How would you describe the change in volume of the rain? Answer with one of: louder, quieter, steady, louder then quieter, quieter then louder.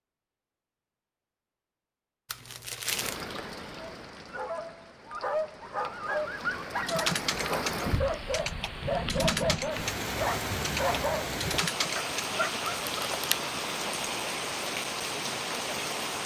louder.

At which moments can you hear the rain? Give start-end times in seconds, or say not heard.
2.9-16.2.